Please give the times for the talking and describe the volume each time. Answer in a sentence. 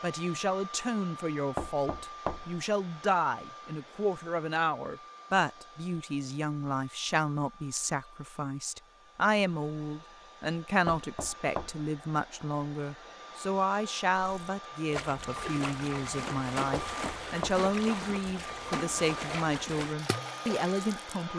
You can hear the talking from 0.0 to 21.3 s, at a steady volume.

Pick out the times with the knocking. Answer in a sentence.
You can hear the knocking from 1.6 to 2.6 s, from 10.8 to 11.9 s and from 16.7 to 17.7 s.